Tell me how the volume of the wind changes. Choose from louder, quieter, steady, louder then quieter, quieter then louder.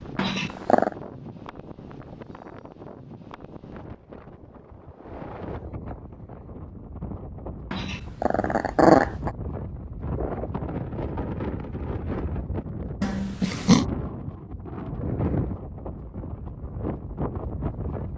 louder.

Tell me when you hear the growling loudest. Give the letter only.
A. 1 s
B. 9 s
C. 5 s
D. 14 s
B.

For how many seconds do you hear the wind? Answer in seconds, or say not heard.
18 s.